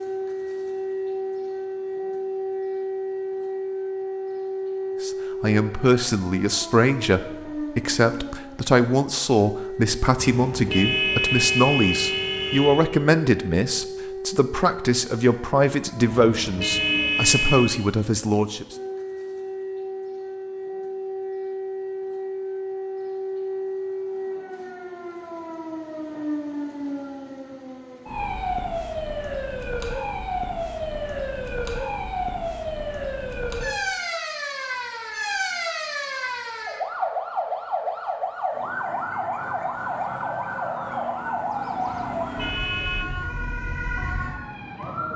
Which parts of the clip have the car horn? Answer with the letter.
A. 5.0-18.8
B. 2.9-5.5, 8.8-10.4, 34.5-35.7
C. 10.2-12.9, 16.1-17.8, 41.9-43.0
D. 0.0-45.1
C.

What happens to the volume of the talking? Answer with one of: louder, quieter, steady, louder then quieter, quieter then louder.
steady.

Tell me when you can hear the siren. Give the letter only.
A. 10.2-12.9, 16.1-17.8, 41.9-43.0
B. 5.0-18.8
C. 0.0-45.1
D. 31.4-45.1
C.